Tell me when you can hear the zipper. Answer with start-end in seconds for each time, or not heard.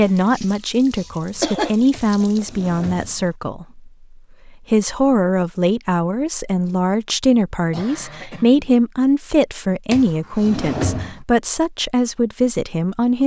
not heard.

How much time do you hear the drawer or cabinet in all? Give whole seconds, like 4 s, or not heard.
3 s.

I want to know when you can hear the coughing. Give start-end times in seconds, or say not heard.
0.3-2.2, 7.7-8.7.